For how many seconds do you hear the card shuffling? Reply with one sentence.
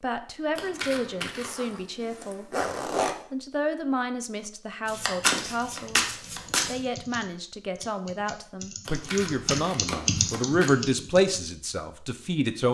You can hear the card shuffling for 5 seconds altogether.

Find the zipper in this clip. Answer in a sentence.
The zipper can be heard from 1.4 to 3.1 s.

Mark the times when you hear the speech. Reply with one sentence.
The speech can be heard from 0.0 to 2.5 s, from 3.3 to 6.0 s and from 6.7 to 12.6 s.